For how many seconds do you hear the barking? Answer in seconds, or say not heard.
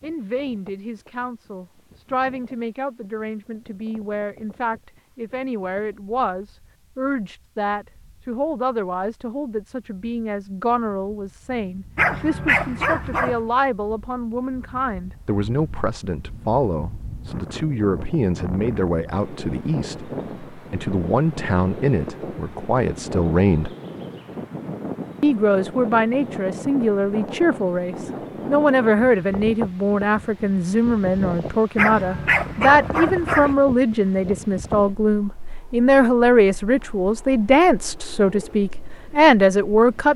3 s.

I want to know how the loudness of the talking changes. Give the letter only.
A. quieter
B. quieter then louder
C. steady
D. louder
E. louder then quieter
D.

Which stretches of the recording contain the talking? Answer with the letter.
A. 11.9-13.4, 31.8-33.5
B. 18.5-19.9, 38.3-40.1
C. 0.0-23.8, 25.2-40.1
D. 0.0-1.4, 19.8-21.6
C.